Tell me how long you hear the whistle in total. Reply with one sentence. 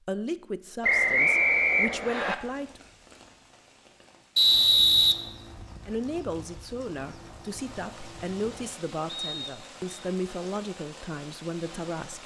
The whistle can be heard for 3 seconds in total.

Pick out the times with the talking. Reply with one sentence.
The talking can be heard from 0.1 to 2.8 s and from 5.8 to 12.2 s.